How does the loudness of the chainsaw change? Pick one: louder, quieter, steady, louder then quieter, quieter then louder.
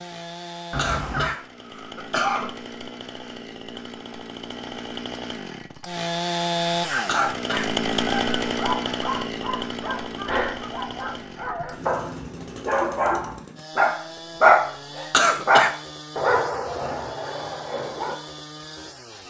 louder then quieter.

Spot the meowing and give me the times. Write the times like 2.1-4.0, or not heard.
0.7-1.4.